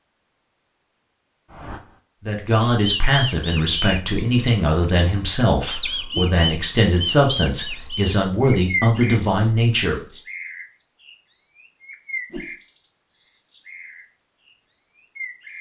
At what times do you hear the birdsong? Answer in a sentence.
The birdsong can be heard from 2.8 to 15.5 s.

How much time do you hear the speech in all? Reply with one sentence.
You can hear the speech for 8 seconds altogether.